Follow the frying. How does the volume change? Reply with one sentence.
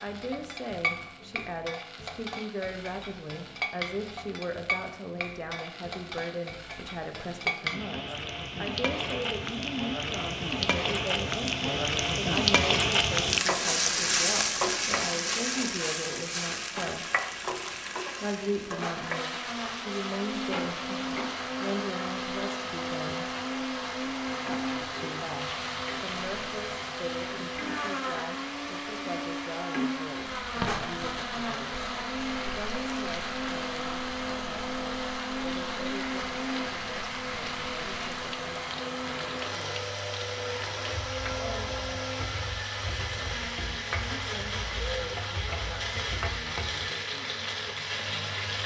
The volume of the frying goes up, then down.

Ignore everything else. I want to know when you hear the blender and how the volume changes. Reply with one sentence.
The blender can be heard from 18.8 to 48.6 s, at a steady volume.